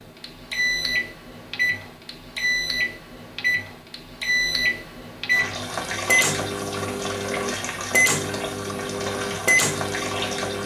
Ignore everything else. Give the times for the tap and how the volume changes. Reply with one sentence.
You can hear the tap from 5.3 to 10.6 s, at a steady volume.